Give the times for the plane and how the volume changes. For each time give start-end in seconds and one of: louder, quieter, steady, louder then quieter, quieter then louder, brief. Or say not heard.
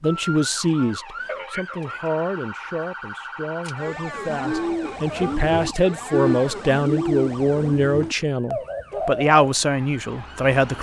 not heard.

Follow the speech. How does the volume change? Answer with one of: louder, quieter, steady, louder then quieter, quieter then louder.
quieter then louder.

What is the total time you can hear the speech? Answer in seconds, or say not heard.
11 s.